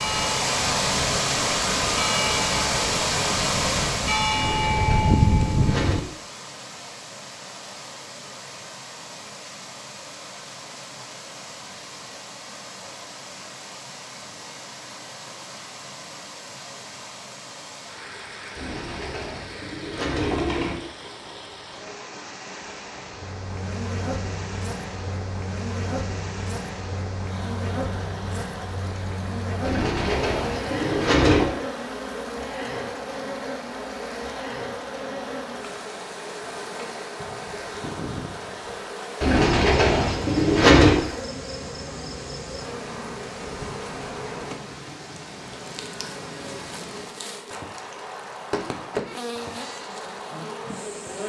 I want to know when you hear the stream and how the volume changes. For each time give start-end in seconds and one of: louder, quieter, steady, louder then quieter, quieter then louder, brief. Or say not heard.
0.0-51.2 quieter.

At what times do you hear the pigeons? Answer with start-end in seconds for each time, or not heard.
4.3-6.0, 18.6-20.8, 29.6-31.5, 39.2-41.0.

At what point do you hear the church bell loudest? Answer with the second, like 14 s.
5 s.